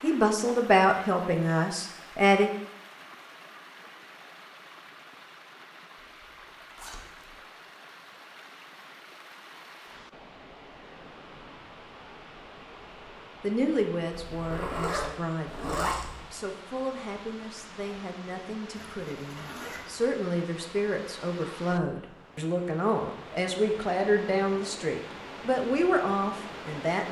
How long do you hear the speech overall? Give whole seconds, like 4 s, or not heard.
16 s.